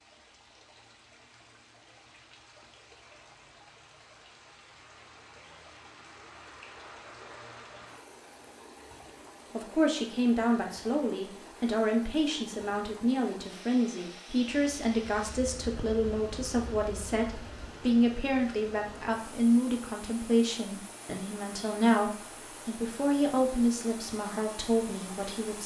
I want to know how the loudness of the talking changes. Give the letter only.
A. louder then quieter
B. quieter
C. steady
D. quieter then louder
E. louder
C.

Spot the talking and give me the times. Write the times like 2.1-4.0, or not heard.
9.5-25.6.